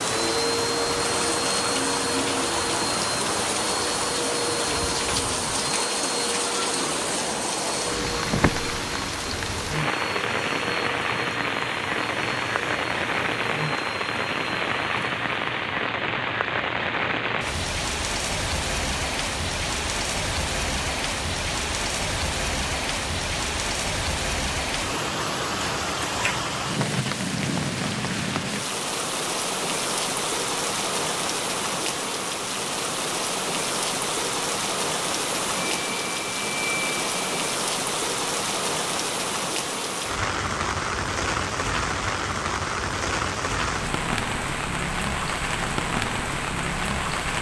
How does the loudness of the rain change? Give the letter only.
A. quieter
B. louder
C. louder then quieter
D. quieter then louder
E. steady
E.